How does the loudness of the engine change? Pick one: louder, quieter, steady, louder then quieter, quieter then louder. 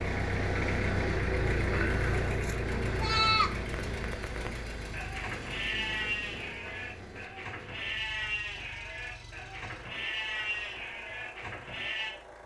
quieter.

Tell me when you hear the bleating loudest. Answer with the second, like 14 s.
3 s.